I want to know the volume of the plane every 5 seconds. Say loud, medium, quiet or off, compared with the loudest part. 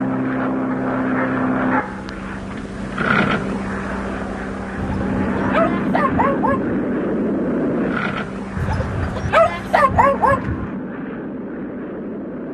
loud, loud, medium.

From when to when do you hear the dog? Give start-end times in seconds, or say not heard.
0.7-2.1, 4.8-6.8, 8.6-10.7.